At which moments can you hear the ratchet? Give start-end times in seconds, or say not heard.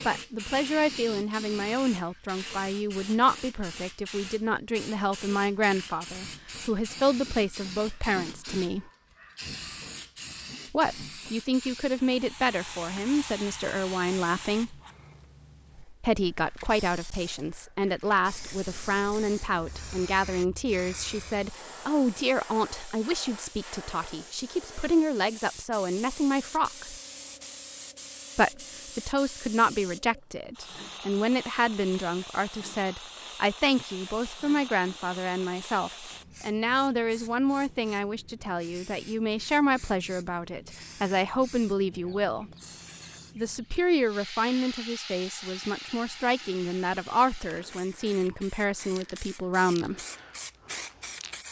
not heard.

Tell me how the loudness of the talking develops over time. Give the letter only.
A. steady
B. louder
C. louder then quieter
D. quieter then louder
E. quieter
A.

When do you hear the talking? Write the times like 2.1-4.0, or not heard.
0.0-8.8, 10.7-14.8, 16.0-26.9, 28.4-42.5, 43.4-50.0.